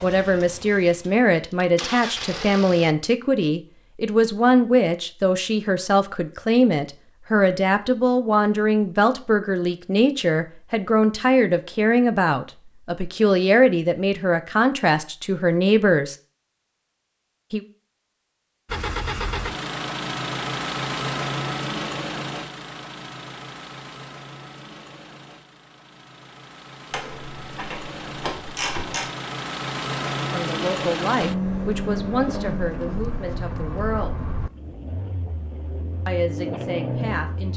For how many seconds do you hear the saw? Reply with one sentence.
You can't hear the saw here.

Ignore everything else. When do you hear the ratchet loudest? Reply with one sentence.
The volume of the ratchet peaks at 29 seconds.